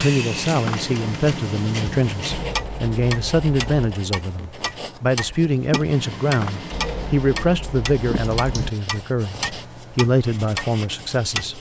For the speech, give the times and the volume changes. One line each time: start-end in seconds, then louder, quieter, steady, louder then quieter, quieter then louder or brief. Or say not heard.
0.0-11.5 steady.